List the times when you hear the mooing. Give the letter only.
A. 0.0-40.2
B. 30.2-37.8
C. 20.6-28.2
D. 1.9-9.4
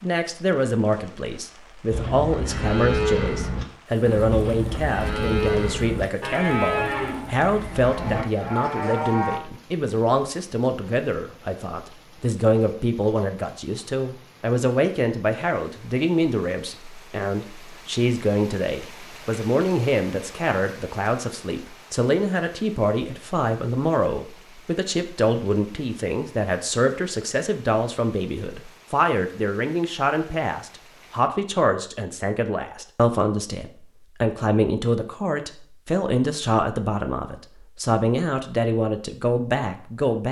D.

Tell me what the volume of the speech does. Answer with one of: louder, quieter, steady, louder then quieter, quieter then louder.
steady.